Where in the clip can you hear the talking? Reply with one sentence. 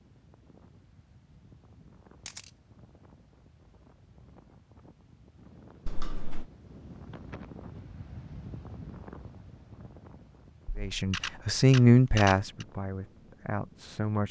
You can hear the talking from 10.8 to 14.2 s.